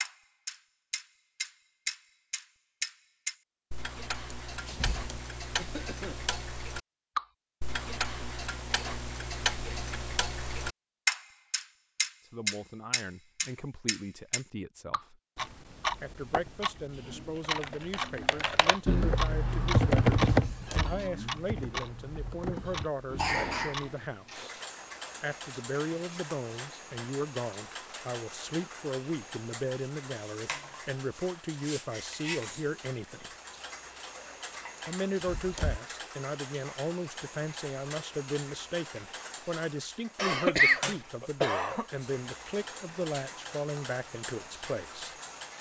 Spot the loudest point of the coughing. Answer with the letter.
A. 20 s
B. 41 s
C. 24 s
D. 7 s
B.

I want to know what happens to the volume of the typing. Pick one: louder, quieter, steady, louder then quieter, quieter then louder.
louder then quieter.